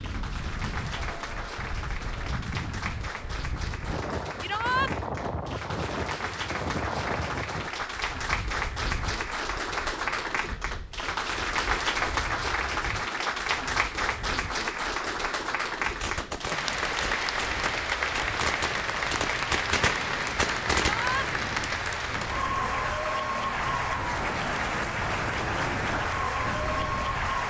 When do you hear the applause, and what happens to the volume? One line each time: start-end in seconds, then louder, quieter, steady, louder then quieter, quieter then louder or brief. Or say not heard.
0.0-27.4 louder.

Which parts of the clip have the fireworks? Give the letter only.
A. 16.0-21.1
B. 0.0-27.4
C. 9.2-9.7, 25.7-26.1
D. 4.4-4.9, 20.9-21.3
A.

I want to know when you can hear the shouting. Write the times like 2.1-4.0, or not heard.
4.4-4.9, 20.9-21.3.